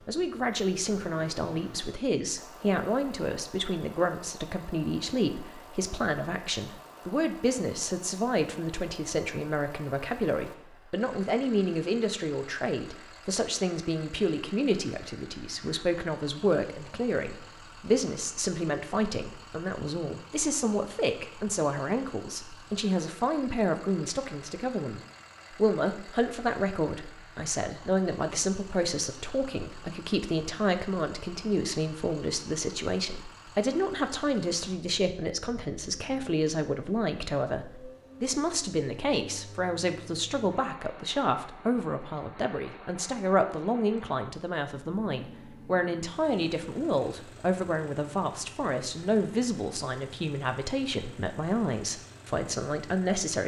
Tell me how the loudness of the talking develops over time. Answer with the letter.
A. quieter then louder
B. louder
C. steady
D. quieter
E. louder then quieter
C.